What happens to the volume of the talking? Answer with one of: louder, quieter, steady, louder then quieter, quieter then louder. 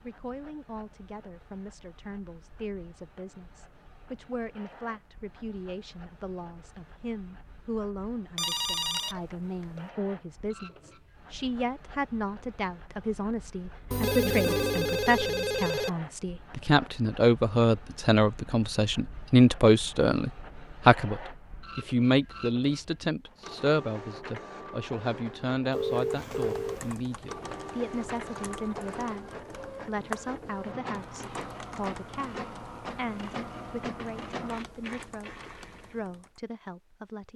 louder then quieter.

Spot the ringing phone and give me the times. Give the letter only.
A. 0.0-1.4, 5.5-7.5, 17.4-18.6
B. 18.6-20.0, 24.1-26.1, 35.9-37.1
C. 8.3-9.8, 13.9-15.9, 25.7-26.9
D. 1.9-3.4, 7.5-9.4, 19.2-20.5
C.